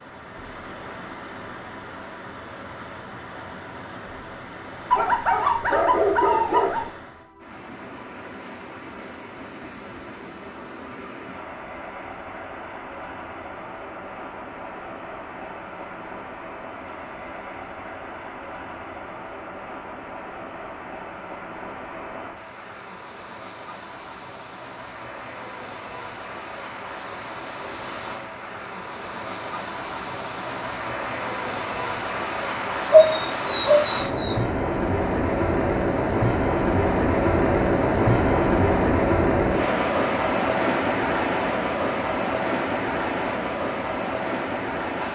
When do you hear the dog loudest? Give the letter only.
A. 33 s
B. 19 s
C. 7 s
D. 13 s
A.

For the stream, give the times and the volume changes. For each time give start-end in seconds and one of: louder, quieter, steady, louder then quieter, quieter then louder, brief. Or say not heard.
0.0-45.0 louder.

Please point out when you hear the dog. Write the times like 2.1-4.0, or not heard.
4.9-6.9, 32.9-34.4.